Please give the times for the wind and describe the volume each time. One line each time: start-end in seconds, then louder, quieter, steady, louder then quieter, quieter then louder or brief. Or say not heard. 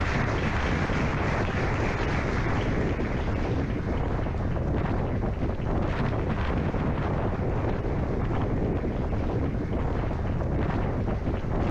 0.0-11.6 steady.